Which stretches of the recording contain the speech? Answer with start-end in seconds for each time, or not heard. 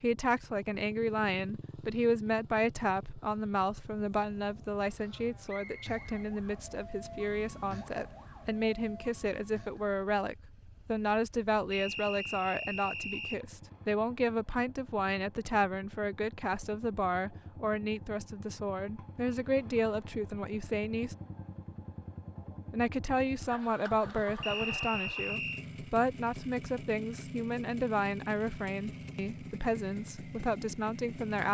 0.0-21.1, 22.7-31.4.